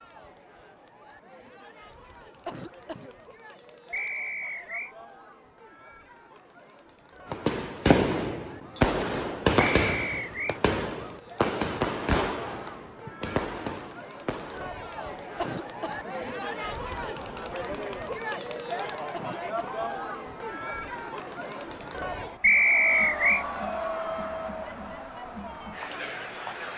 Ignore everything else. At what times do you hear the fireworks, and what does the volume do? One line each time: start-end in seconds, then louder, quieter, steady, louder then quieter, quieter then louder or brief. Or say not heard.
7.3-14.7 quieter.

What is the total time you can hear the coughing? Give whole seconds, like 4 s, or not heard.
2 s.